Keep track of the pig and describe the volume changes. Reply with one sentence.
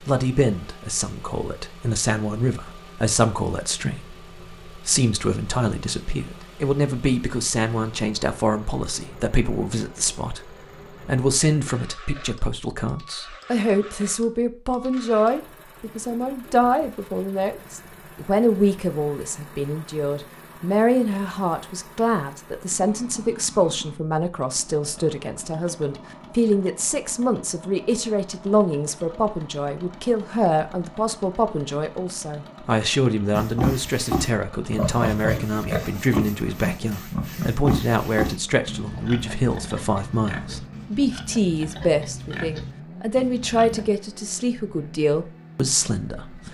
The volume of the pig goes down.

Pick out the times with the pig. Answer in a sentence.
The pig can be heard from 33.3 to 43.9 s.